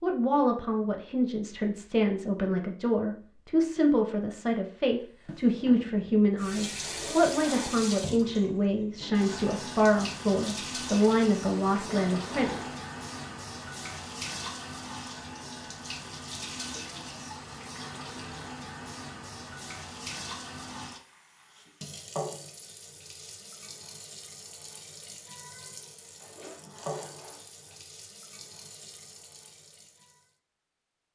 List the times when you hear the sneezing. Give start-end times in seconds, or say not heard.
not heard.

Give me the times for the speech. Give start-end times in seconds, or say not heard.
0.0-12.7.